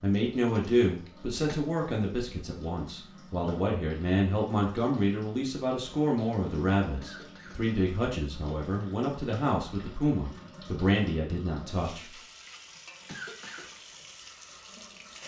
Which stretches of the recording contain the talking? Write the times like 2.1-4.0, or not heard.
0.0-12.1.